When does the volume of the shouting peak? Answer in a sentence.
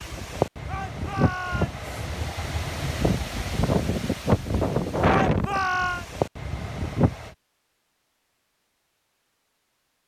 The volume of the shouting peaks at 6 seconds.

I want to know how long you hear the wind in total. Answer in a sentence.
You can hear the wind for 7 seconds altogether.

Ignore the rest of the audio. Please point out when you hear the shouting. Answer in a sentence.
You can hear the shouting from 0.7 to 1.8 s and from 5.0 to 6.0 s.